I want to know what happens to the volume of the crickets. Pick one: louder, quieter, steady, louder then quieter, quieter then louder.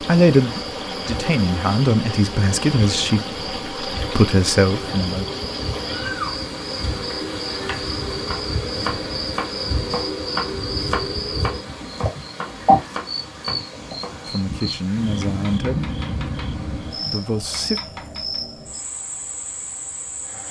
louder then quieter.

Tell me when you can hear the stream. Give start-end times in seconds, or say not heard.
0.0-17.4.